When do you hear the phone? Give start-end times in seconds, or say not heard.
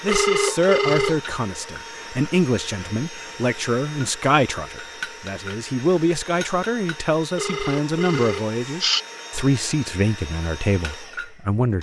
0.1-1.2, 7.3-9.0.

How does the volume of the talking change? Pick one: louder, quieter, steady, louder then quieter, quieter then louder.
steady.